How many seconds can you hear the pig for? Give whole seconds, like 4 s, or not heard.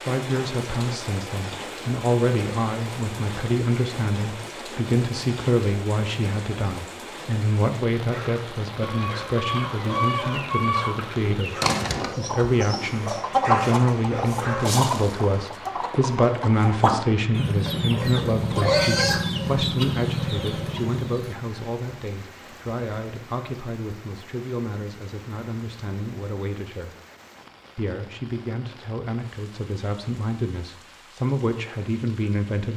2 s.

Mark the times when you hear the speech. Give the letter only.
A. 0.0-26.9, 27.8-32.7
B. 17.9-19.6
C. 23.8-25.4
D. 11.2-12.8
A.